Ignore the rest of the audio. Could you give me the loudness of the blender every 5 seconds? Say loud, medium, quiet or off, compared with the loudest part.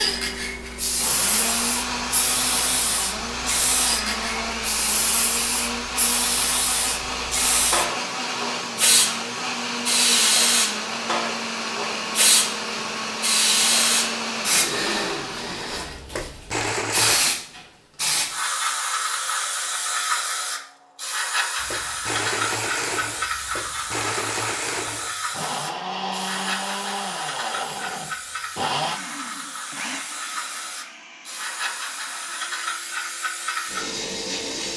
loud, loud, loud, loud, loud, loud, quiet.